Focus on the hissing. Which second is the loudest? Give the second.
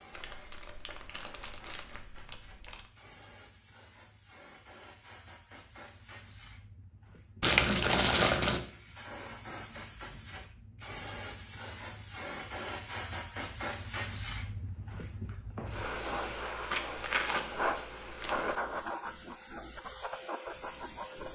18 s.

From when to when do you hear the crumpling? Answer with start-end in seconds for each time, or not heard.
0.1-2.9, 7.4-8.7, 16.6-18.4.